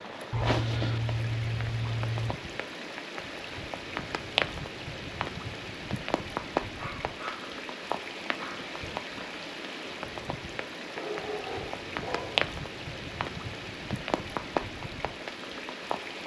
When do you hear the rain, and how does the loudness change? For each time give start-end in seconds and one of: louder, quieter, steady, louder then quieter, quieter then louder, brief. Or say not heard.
0.0-16.2 steady.